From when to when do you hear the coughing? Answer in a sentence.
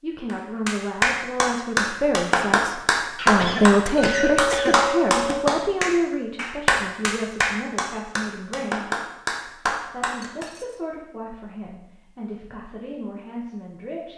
The coughing can be heard from 3.1 to 4.8 s.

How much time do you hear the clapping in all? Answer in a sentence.
You can hear the clapping for 10 seconds altogether.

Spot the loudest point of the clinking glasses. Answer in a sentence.
The loudest moment of the clinking glasses is at 4 seconds.